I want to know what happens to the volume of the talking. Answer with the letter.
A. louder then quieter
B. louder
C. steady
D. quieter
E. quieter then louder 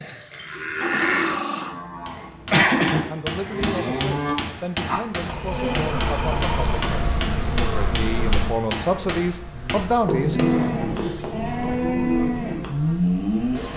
B.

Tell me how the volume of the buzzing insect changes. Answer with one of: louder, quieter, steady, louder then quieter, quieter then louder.
quieter.